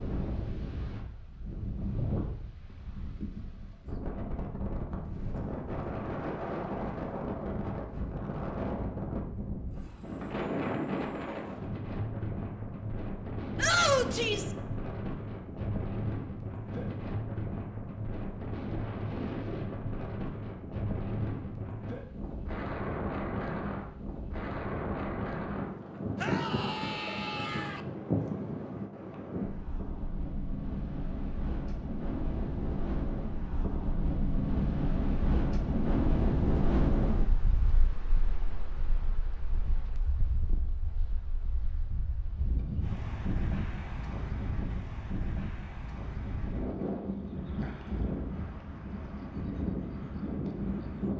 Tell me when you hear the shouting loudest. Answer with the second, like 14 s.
14 s.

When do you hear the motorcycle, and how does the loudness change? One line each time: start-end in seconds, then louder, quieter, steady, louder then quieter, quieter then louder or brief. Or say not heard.
not heard.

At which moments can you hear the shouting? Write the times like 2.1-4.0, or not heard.
13.6-14.5, 26.1-27.8.